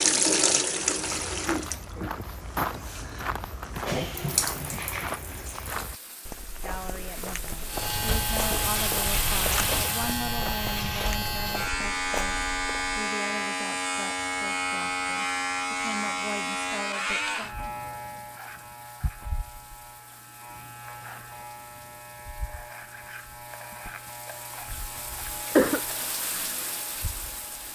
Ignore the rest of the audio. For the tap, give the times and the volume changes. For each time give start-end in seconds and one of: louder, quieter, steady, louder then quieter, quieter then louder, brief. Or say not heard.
0.0-10.2 quieter then louder
17.4-27.7 louder.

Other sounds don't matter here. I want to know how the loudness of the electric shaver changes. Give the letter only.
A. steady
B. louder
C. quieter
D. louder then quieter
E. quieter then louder
C.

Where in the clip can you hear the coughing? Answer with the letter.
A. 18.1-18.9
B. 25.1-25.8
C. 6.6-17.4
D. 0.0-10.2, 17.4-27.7
B.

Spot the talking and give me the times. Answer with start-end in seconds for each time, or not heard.
6.6-17.4.